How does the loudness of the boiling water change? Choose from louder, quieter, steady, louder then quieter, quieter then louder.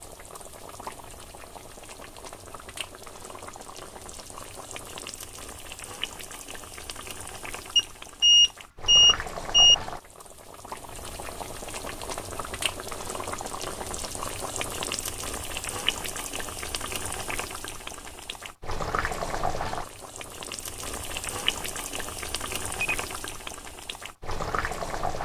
louder.